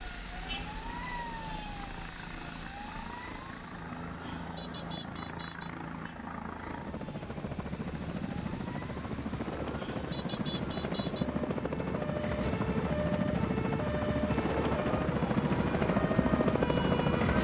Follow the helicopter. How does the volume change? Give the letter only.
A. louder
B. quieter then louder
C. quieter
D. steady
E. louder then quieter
A.